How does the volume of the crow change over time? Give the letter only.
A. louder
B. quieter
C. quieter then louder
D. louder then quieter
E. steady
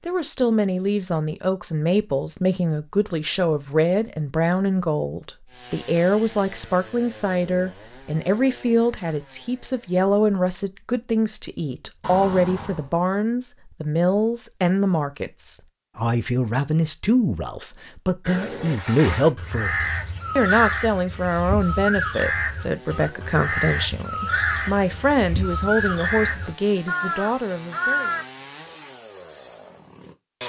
E.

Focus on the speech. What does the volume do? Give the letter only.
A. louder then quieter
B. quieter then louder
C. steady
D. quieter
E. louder
C.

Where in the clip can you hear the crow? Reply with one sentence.
You can hear the crow from 18.2 to 28.2 s.